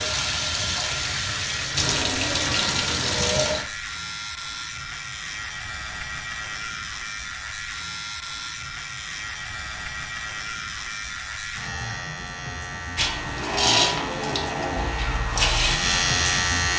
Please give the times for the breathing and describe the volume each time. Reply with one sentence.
The breathing can't be heard in this clip.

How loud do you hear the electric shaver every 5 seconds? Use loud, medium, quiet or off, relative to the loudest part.
medium, medium, medium, loud.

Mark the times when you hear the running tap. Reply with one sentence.
You can hear the running tap from 0.0 to 3.6 s and from 12.9 to 16.7 s.